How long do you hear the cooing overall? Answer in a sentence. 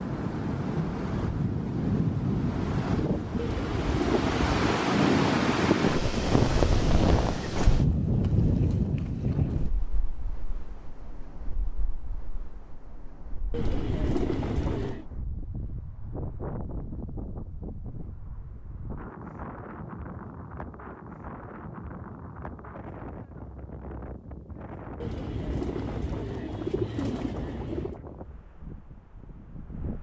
You can hear the cooing for 6 seconds altogether.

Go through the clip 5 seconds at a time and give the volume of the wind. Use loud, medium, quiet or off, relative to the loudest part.
loud, loud, quiet, quiet, quiet, quiet.